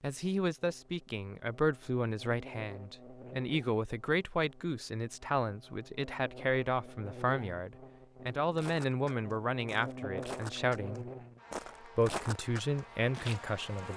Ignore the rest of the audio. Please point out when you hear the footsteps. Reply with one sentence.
The footsteps can be heard from 8.6 to 13.9 s.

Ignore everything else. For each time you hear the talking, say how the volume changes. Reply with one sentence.
You can hear the talking from 0.0 to 11.1 s, at a steady volume; and briefly from 11.8 to 13.9 s.